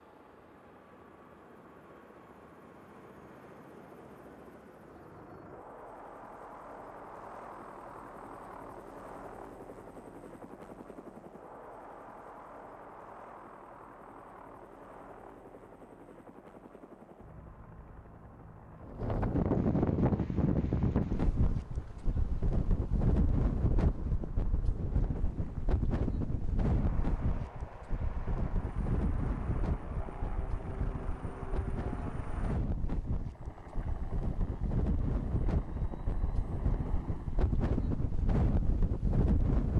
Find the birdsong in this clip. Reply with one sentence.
You can't hear the birdsong here.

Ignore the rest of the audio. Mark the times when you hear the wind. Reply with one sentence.
You can hear the wind from 18.8 to 39.7 s.